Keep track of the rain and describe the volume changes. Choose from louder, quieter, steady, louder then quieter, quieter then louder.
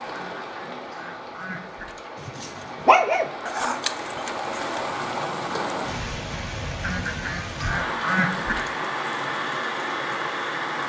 louder.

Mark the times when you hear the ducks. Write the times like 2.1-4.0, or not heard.
0.1-2.1, 6.8-8.7.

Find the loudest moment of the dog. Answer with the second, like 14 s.
3 s.